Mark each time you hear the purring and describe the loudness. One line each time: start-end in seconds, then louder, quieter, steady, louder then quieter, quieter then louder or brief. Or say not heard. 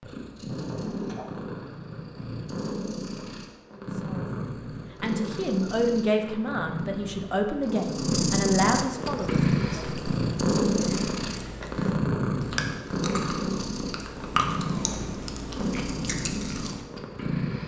0.0-17.6 louder then quieter.